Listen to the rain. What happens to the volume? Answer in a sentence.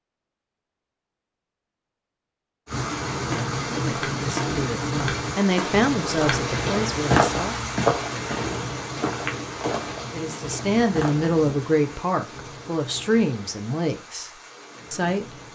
The loudness of the rain goes down.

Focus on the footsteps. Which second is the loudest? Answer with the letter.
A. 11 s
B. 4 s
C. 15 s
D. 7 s
D.